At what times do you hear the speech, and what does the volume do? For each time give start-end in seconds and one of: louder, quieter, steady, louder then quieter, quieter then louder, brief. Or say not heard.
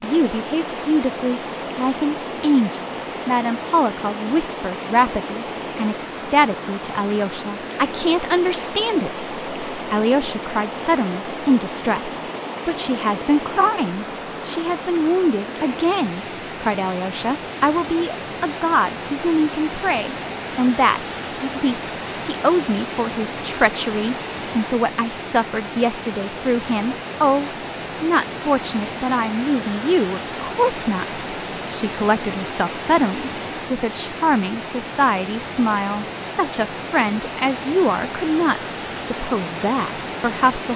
0.0-40.7 steady.